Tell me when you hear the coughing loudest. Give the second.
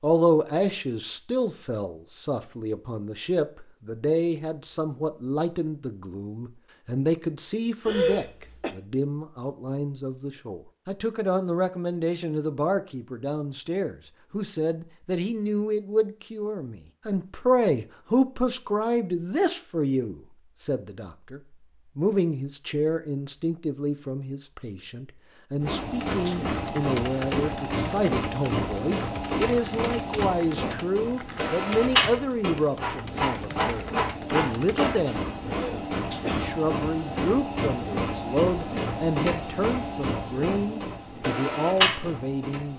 8 s.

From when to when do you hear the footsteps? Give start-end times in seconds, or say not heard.
not heard.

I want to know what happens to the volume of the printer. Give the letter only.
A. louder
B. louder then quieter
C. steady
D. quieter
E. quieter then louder
C.